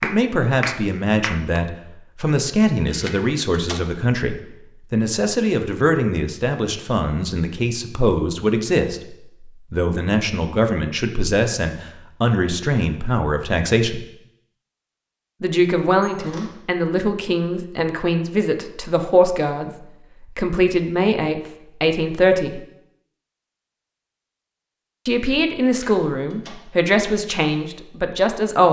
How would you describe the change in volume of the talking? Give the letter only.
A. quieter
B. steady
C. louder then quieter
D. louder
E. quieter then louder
B.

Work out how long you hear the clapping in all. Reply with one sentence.
The clapping can be heard for 2 seconds in total.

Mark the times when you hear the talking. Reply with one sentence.
The talking can be heard from 0.0 to 14.0 s, from 15.4 to 22.6 s and from 25.1 to 28.6 s.